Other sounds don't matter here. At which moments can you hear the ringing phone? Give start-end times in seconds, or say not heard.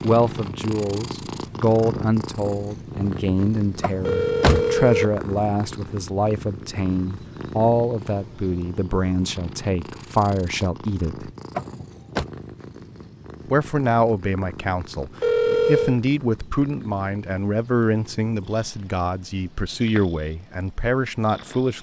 4.0-5.2, 15.2-15.9.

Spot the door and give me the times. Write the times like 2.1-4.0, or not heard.
3.8-4.7, 11.6-12.2.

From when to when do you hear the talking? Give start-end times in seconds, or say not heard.
0.0-11.3, 13.4-21.7.